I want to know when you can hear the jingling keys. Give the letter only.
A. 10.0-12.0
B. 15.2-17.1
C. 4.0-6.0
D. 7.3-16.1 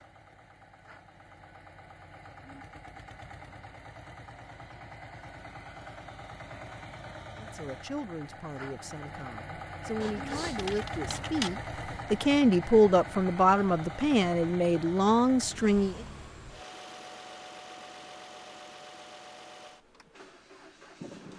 A.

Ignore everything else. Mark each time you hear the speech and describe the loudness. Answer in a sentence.
You can hear the speech from 7.3 to 16.1 s, getting louder.